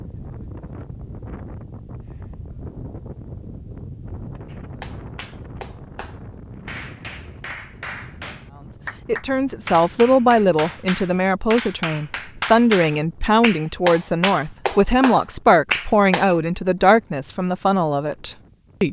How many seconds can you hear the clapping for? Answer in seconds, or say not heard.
12 s.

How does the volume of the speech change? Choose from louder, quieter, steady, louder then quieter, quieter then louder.
steady.